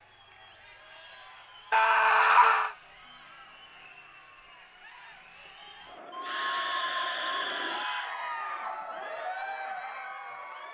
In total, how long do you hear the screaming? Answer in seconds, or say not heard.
3 s.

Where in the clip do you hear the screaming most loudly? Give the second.
2 s.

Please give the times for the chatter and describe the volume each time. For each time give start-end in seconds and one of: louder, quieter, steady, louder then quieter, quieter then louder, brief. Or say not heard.
0.0-10.7 louder.